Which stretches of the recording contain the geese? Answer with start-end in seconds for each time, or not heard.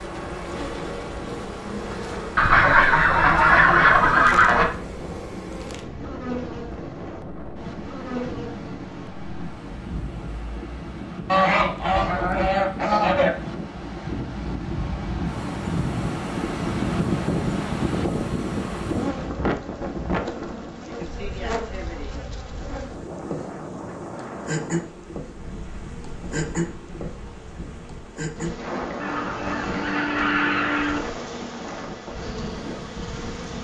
2.4-4.7, 11.2-13.3, 29.0-31.0.